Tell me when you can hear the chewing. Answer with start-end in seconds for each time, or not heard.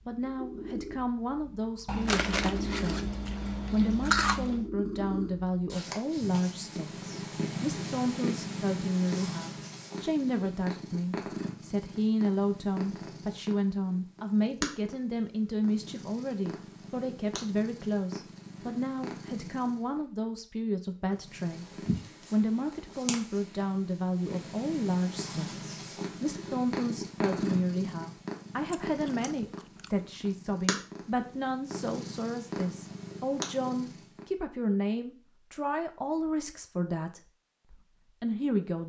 1.9-4.7, 28.7-30.4.